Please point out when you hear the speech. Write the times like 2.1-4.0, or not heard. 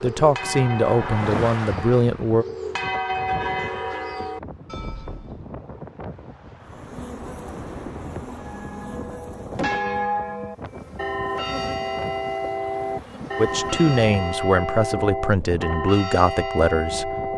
0.0-2.5, 13.3-17.1.